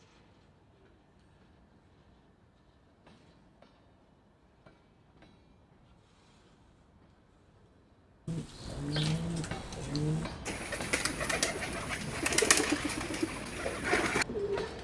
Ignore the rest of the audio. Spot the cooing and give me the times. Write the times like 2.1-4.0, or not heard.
8.2-14.8.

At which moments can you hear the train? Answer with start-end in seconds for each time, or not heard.
0.0-14.8.